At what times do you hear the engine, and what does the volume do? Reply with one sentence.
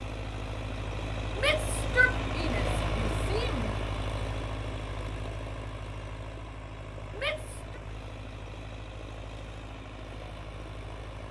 The engine can be heard from 0.0 to 11.2 s, getting quieter.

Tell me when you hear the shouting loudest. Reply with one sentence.
The loudest moment of the shouting is at 2 seconds.